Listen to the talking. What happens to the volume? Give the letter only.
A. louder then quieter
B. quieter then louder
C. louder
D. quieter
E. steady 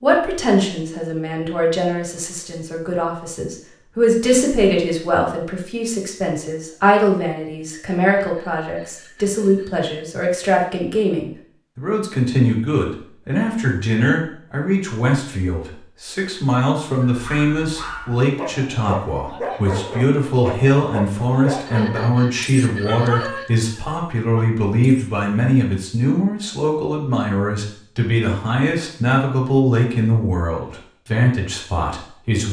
E.